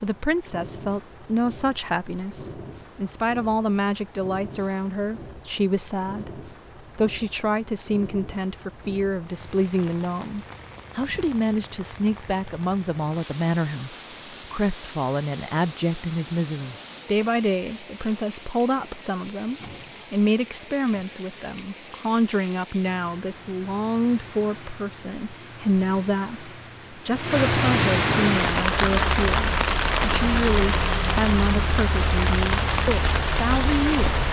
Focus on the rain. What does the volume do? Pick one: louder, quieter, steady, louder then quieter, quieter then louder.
louder.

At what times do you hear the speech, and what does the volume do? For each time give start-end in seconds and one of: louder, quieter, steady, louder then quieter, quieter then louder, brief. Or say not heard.
0.0-34.1 steady.